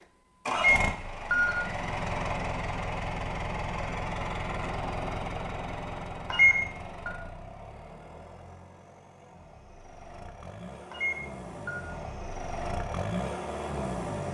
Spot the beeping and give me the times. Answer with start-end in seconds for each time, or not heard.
0.6-1.6, 6.3-7.1, 10.9-11.8.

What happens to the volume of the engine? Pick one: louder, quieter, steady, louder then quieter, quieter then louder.
quieter then louder.